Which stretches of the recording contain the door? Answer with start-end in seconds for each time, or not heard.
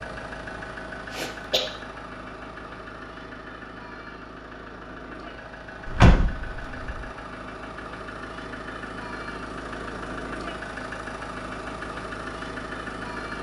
5.8-7.0.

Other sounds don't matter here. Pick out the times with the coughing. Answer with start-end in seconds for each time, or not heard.
1.1-1.6.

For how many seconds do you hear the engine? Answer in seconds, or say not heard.
13 s.